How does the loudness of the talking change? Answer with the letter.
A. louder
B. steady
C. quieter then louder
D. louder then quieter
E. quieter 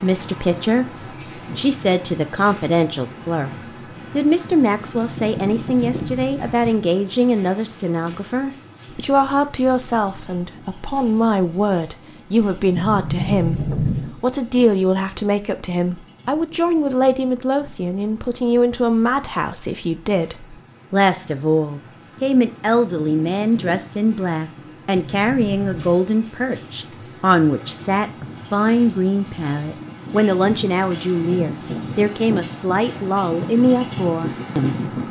B.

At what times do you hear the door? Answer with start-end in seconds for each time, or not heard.
5.0-6.8, 12.8-14.2, 24.9-26.0.